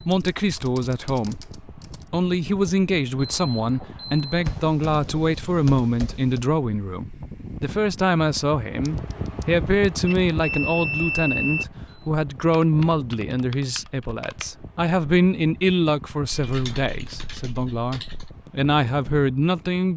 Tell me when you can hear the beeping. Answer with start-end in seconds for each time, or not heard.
3.1-4.7, 10.1-11.7, 16.5-17.1.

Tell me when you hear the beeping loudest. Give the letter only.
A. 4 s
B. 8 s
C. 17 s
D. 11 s
D.